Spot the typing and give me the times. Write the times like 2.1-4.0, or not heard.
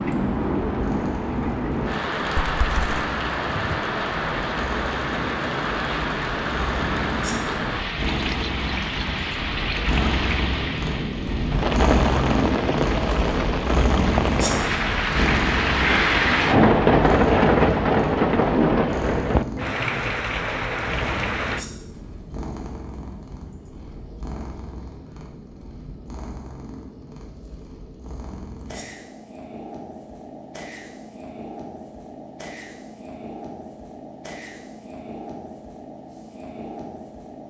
not heard.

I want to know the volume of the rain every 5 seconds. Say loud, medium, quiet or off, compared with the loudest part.
medium, medium, medium, loud, medium, off, off, off.